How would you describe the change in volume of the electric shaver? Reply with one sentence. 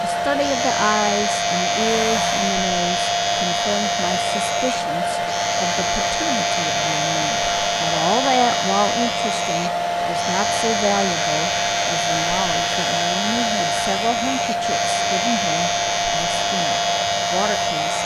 The loudness of the electric shaver stays about the same.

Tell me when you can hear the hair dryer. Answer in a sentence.
You can hear the hair dryer from 0.0 to 18.0 s.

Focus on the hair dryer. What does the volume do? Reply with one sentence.
The loudness of the hair dryer stays about the same.